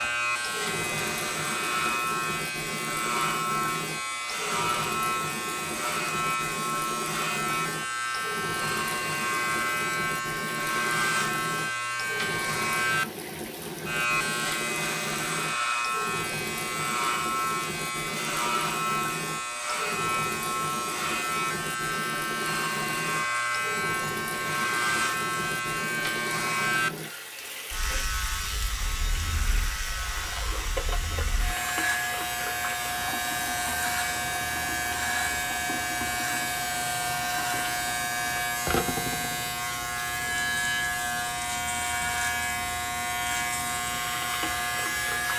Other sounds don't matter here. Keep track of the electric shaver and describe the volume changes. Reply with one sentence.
The volume of the electric shaver stays about the same.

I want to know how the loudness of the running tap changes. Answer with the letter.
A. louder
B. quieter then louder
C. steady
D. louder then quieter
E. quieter
C.